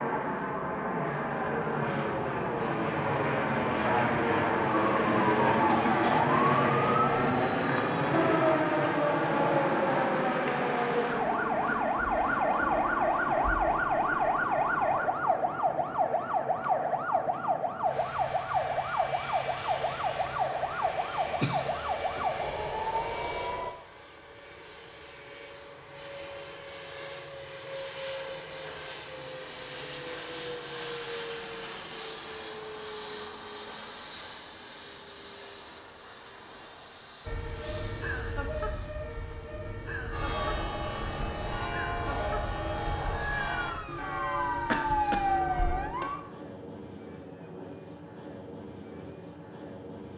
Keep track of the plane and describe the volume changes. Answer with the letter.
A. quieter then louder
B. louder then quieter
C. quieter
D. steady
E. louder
C.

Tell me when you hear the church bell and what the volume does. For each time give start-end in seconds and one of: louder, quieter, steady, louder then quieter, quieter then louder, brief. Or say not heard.
40.1-46.1 steady.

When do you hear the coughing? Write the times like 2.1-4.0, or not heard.
5.7-6.3, 21.4-22.4, 44.6-45.2.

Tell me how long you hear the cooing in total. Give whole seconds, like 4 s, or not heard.
not heard.